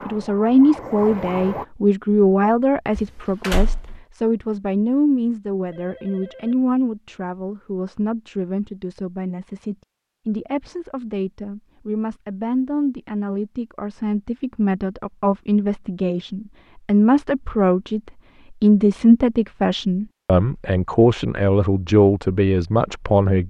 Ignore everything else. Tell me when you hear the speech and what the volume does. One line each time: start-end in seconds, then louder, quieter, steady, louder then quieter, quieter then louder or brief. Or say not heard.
0.1-23.4 quieter then louder.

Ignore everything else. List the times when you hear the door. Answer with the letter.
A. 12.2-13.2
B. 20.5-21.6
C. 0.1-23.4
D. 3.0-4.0
D.